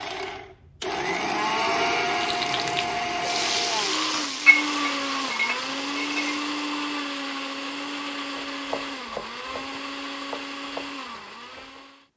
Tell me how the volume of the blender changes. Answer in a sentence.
The loudness of the blender goes down.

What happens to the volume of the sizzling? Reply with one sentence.
The volume of the sizzling goes up, then down.